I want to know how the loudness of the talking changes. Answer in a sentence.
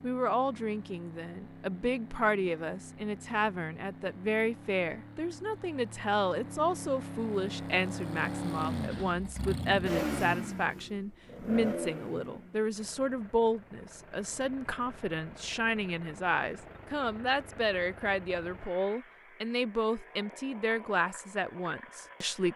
The volume of the talking stays about the same.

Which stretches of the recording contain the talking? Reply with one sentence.
You can hear the talking from 0.0 to 22.5 s.